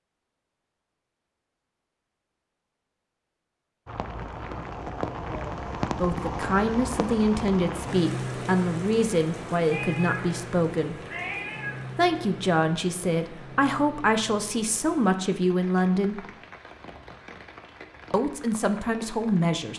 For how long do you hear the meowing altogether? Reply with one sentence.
You can hear the meowing for 2 seconds altogether.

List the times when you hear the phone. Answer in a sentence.
The phone can't be heard in this clip.